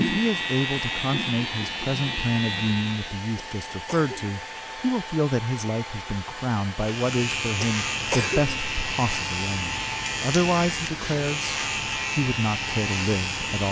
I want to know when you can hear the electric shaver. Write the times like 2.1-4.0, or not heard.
0.0-3.2, 6.8-13.6.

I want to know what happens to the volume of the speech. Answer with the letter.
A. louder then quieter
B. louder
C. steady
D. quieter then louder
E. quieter
C.